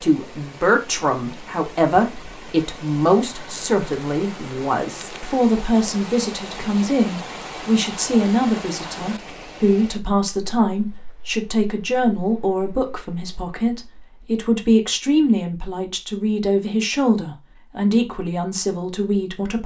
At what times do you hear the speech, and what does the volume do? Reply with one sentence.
The speech can be heard from 0.0 to 19.6 s, at a steady volume.